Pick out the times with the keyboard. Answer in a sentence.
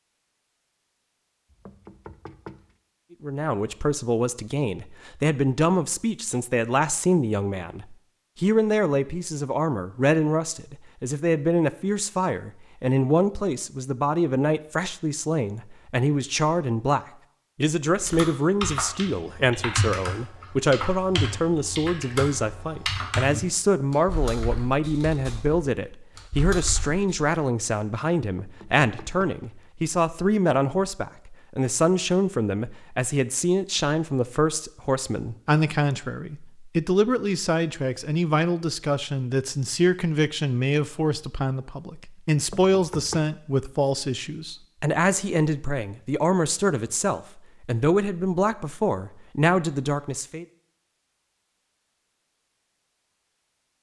The keyboard can be heard from 18.0 to 27.1 s.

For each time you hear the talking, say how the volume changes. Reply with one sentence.
You can hear the talking from 3.2 to 50.5 s, at a steady volume.